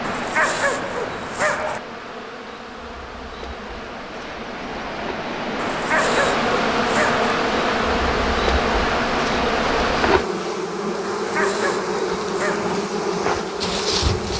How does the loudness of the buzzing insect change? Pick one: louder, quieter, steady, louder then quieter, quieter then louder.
louder.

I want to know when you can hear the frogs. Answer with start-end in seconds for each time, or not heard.
not heard.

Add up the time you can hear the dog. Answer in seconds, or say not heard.
5 s.